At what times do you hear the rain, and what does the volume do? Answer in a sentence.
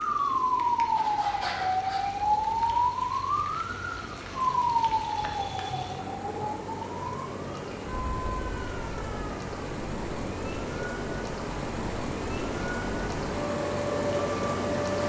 You can hear the rain from 0.0 to 15.0 s, getting louder.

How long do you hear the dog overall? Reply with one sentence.
The dog can't be heard in this clip.